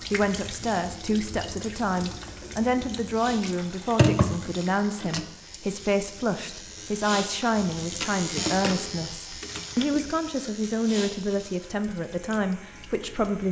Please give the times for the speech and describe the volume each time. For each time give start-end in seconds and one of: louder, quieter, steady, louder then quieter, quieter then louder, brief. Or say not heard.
0.0-13.4 steady.